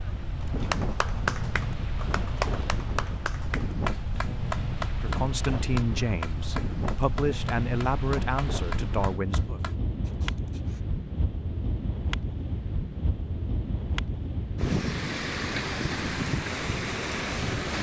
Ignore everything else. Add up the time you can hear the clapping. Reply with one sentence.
The clapping can be heard for 9 seconds in total.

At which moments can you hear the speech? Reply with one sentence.
The speech can be heard from 5.0 to 9.6 s.